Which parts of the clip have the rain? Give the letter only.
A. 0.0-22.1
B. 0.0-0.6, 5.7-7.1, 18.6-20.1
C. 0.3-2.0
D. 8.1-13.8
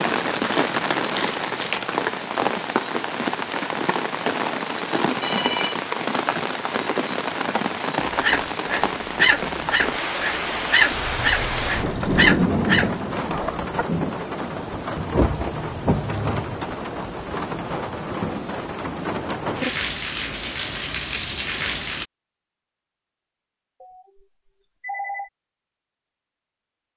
A.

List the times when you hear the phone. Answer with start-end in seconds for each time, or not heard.
5.2-5.8, 10.9-12.3, 23.8-25.3.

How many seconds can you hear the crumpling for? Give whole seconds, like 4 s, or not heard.
2 s.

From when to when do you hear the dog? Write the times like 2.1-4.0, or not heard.
8.1-13.8.